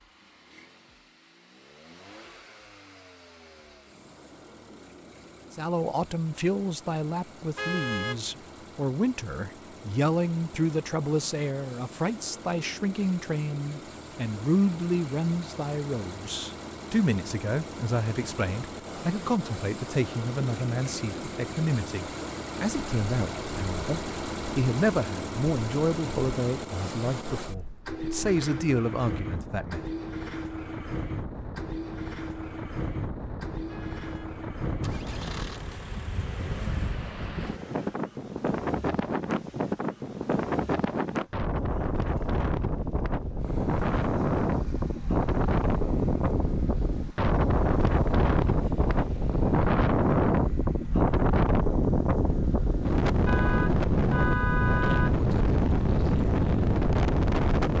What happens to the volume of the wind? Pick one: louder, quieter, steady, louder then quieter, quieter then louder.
louder.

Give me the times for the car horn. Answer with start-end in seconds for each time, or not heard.
7.5-8.2, 33.6-34.3, 53.2-55.2.